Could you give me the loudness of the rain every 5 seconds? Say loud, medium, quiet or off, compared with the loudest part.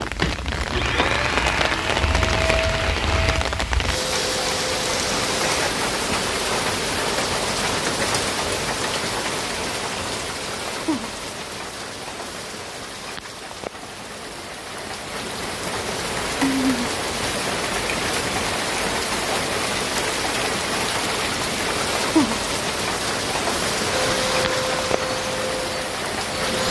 loud, loud, medium, loud, loud, loud.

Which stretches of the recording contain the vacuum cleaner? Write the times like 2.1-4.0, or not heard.
0.0-5.8, 23.9-26.6.